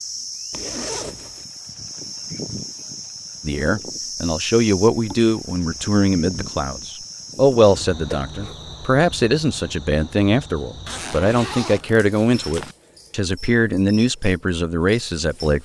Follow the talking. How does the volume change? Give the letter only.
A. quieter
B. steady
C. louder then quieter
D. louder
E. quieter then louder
B.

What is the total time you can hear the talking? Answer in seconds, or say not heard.
12 s.